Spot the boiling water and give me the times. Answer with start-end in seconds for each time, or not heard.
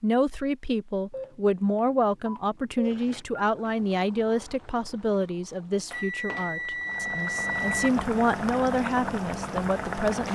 2.8-10.2.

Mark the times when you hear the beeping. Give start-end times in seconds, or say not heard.
1.1-3.5, 5.9-7.9.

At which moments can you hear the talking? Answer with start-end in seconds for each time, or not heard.
0.0-10.2.